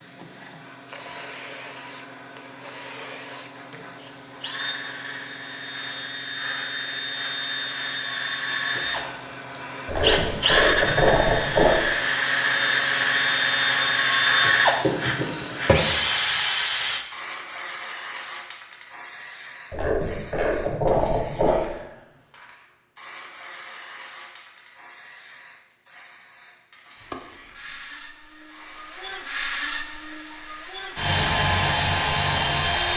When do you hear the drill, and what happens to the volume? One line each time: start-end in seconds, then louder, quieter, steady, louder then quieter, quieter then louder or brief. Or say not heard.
0.0-17.1 louder
27.1-32.9 louder.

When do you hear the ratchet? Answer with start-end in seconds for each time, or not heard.
9.8-11.8, 19.7-21.6.